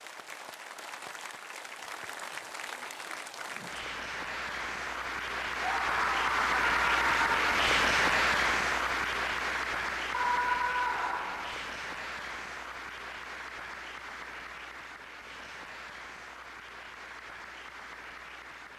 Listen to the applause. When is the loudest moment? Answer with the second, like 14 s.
8 s.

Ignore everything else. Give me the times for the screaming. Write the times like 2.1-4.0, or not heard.
5.6-7.5, 10.1-11.6.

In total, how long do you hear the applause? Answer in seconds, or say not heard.
19 s.